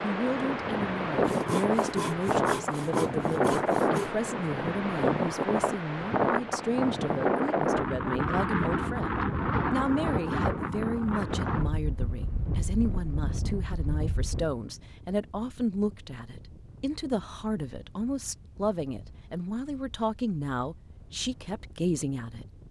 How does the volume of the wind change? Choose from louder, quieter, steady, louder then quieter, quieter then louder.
quieter.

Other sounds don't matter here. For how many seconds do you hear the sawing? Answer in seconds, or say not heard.
3 s.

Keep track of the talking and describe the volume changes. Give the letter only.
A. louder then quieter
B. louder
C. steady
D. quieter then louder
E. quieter
C.